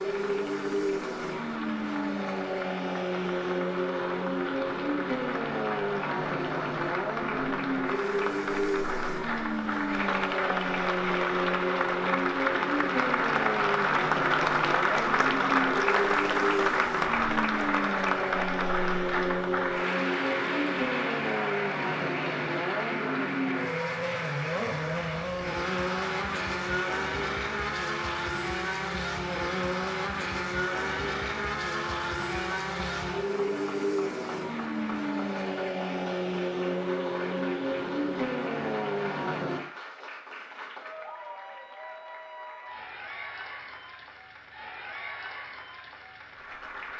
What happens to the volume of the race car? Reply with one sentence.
The loudness of the race car stays about the same.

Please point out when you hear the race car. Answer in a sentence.
The race car can be heard from 0.0 to 39.6 s.